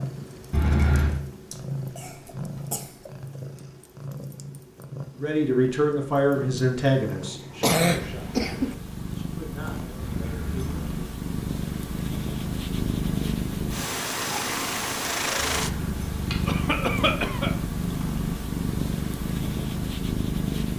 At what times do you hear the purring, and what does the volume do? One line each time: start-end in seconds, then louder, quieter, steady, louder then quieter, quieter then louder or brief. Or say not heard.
0.0-20.7 louder.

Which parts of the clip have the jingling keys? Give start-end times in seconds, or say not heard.
0.5-1.2, 10.0-10.8, 15.3-16.6.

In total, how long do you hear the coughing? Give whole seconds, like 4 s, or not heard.
4 s.